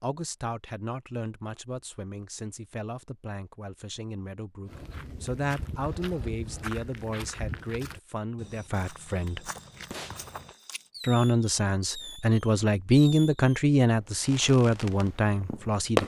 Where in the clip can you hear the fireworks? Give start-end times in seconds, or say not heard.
9.9-16.0.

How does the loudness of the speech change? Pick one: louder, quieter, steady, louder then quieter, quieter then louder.
louder.